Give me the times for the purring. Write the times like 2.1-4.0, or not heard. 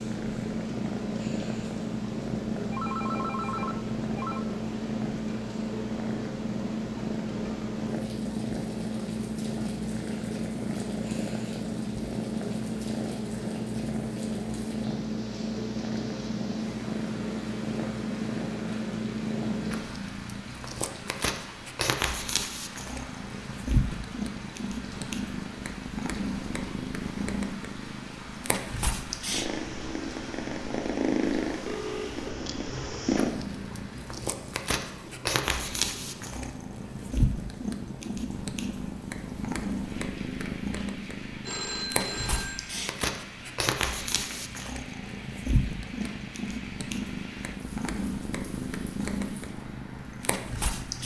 0.0-51.0.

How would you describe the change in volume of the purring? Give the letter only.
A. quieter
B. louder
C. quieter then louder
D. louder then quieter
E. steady
E.